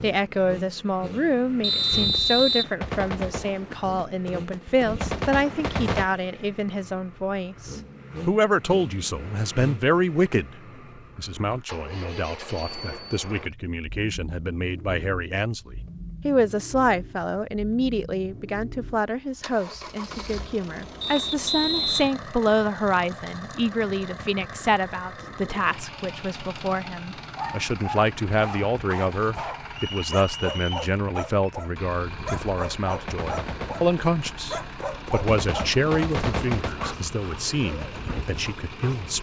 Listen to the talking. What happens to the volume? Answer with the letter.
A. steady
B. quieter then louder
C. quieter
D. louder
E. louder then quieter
A.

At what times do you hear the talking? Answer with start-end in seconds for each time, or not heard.
0.0-39.1.